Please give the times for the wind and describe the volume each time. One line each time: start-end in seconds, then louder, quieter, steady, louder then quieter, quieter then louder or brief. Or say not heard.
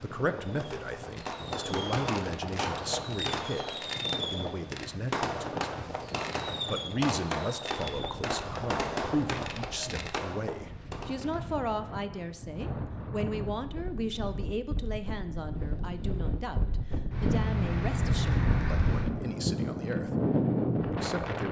0.0-21.4 louder.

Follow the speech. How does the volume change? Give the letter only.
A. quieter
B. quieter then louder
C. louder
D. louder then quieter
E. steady
E.